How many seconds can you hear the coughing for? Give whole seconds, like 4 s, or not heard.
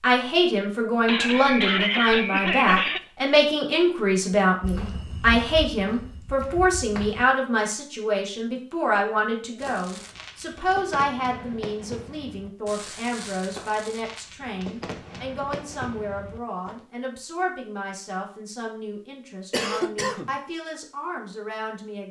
3 s.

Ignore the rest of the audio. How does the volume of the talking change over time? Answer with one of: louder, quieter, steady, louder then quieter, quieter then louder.
quieter.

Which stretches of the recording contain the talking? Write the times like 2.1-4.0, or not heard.
0.0-22.0.